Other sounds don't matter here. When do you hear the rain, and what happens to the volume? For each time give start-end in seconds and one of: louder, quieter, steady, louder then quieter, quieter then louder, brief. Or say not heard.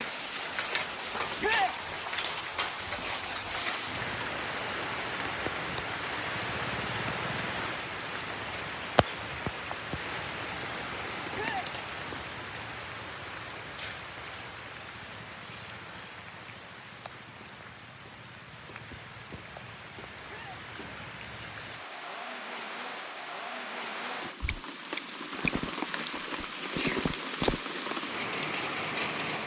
0.0-29.4 quieter then louder.